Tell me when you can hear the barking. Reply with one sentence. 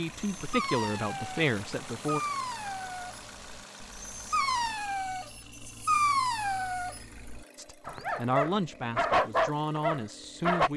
The barking can be heard from 0.2 to 10.7 s.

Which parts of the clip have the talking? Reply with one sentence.
You can hear the talking from 0.0 to 2.2 s and from 7.5 to 10.7 s.